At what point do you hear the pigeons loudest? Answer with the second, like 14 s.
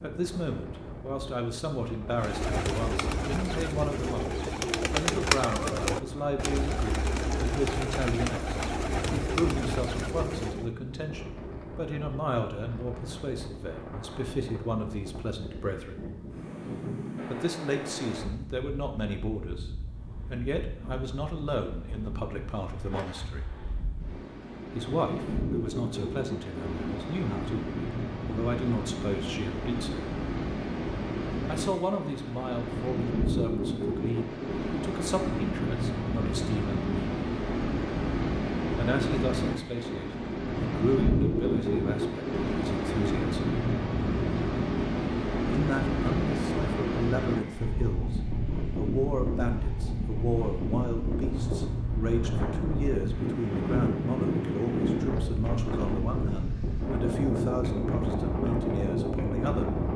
5 s.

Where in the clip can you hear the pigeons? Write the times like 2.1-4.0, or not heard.
2.1-10.7.